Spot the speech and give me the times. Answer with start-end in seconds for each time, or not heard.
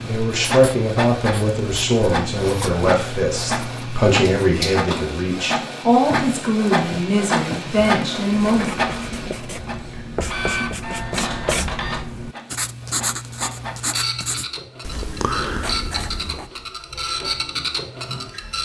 0.0-9.3.